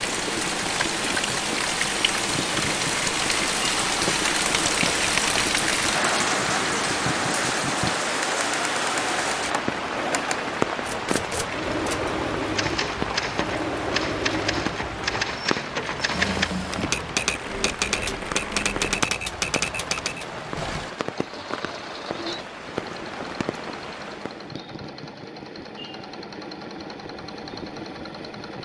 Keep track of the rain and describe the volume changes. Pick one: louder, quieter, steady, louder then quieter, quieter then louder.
quieter.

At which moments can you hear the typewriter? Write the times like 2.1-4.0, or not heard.
10.8-20.2.